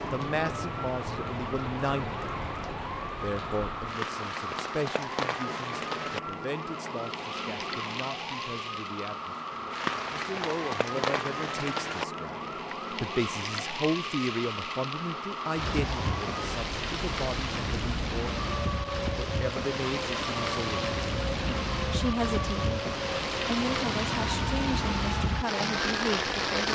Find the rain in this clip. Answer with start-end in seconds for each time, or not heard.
0.0-26.6.